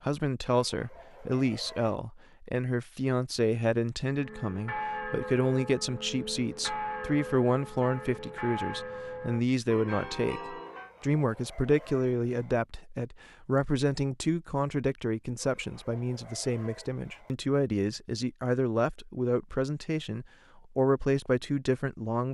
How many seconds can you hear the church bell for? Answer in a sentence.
You can hear the church bell for 7 seconds altogether.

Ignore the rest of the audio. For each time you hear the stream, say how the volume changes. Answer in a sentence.
The stream can't be heard in this clip.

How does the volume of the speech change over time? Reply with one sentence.
The loudness of the speech stays about the same.